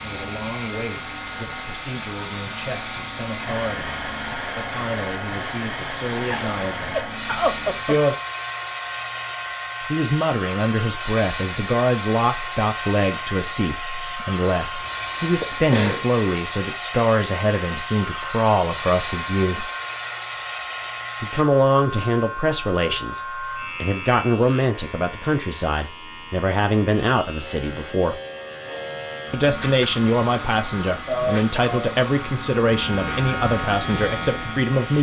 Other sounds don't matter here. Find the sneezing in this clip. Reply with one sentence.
The sneezing can be heard from 6.2 to 8.0 s, from 14.8 to 16.1 s and from 31.1 to 31.9 s.